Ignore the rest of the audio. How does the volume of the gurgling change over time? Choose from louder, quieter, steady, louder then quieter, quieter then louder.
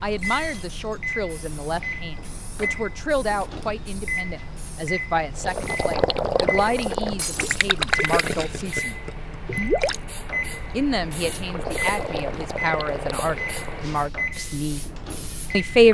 quieter.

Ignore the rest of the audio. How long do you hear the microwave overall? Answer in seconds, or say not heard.
16 s.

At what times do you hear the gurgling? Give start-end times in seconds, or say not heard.
5.4-13.8.